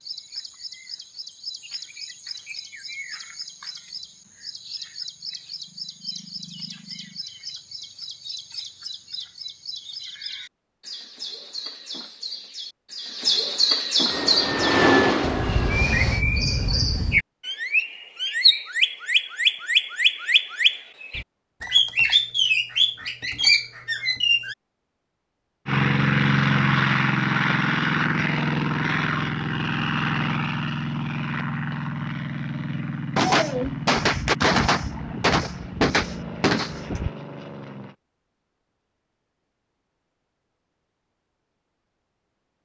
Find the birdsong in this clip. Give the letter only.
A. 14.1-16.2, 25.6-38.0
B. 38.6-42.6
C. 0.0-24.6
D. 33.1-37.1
C.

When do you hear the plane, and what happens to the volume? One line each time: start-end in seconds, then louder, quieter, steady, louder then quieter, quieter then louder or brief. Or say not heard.
14.1-16.2 brief
25.6-38.0 quieter.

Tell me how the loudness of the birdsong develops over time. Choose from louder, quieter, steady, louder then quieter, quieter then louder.
louder.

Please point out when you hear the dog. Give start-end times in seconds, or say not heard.
not heard.